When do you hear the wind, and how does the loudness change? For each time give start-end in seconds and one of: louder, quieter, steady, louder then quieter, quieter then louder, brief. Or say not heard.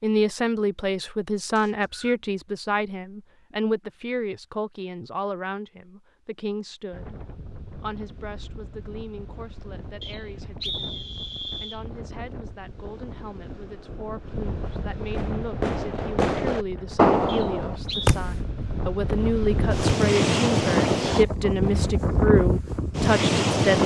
6.9-23.8 louder.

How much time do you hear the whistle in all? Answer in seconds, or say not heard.
3 s.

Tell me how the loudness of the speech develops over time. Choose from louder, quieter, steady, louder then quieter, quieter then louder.
quieter then louder.